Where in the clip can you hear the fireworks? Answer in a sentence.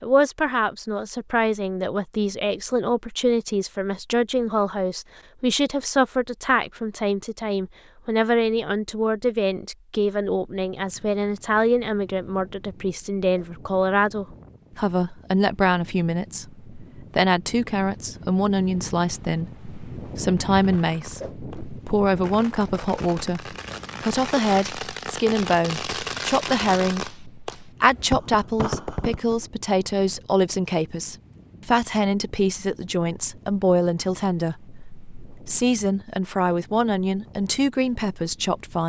You can hear the fireworks from 20.6 to 29.4 s.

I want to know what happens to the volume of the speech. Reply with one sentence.
The loudness of the speech stays about the same.